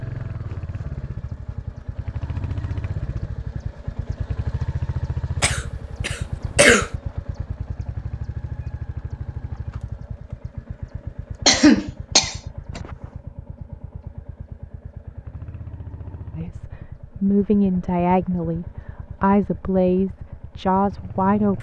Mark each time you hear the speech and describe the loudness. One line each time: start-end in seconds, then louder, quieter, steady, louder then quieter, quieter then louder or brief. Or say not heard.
16.4-21.5 steady.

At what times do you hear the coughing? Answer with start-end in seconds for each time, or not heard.
5.4-6.9, 11.4-12.8.